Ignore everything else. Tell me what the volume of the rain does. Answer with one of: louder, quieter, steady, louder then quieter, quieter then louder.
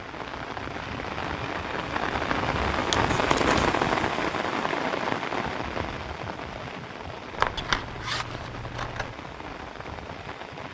louder then quieter.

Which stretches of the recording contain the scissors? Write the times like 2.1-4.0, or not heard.
2.9-3.7, 7.3-9.2.